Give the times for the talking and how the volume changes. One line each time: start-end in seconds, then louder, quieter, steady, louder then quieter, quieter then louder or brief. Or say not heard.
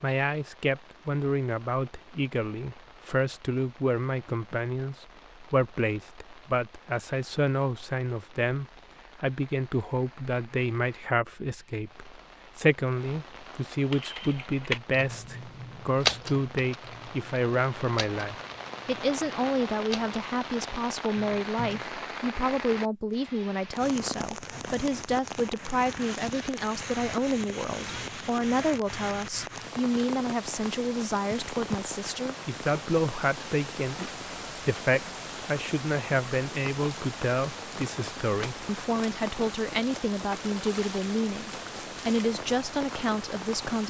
0.0-43.8 steady.